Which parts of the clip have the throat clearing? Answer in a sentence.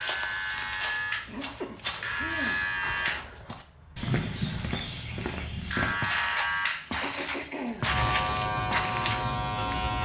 The throat clearing can be heard from 1.2 to 2.6 s and from 7.0 to 8.0 s.